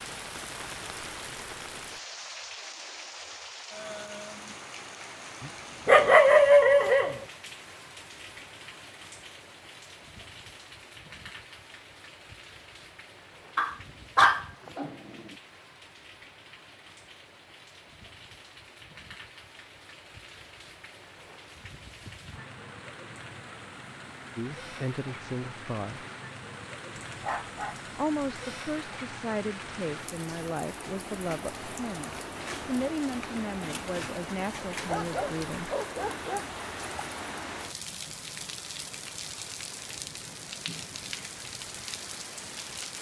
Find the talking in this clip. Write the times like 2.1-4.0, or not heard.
24.4-26.1, 27.9-35.7.